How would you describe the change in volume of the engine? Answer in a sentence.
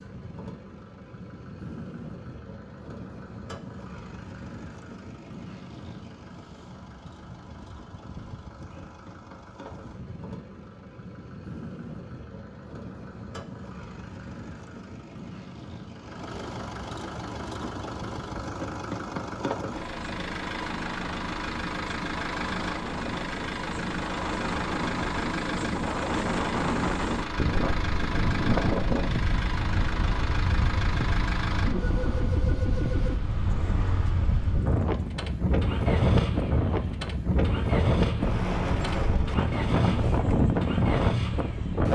The volume of the engine goes up.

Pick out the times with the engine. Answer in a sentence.
The engine can be heard from 0.0 to 41.9 s.